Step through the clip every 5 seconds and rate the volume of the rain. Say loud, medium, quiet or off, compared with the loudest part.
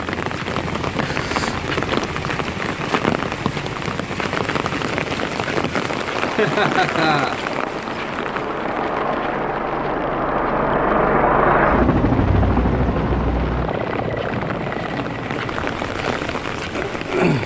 loud, loud, medium, loud.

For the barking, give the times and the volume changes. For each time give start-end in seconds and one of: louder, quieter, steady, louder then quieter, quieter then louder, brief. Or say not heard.
not heard.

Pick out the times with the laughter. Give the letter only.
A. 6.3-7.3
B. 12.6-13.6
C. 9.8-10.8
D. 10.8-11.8
A.